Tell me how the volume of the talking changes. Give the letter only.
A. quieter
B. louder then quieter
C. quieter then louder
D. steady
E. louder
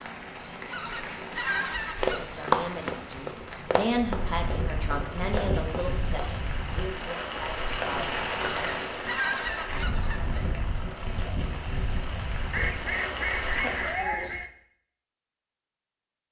B.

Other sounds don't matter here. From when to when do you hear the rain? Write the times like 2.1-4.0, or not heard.
0.0-14.1.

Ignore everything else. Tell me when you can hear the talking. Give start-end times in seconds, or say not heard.
2.1-8.0.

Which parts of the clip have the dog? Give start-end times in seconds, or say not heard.
not heard.